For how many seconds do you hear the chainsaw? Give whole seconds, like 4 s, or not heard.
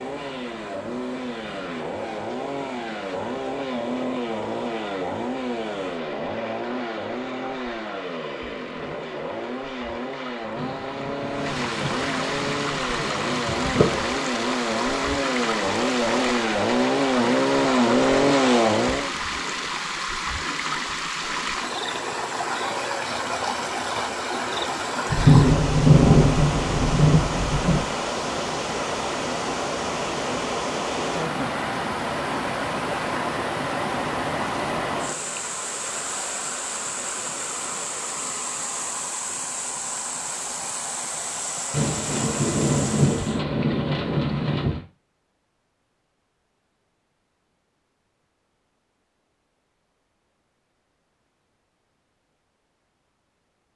19 s.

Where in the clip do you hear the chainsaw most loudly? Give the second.
18 s.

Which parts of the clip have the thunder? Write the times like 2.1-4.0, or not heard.
10.6-14.1, 25.1-27.9, 41.7-44.9.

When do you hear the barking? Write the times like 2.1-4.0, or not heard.
not heard.